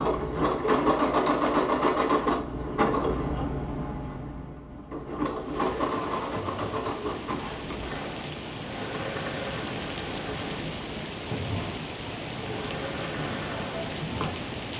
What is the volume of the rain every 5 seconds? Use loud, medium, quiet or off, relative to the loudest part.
off, loud, loud.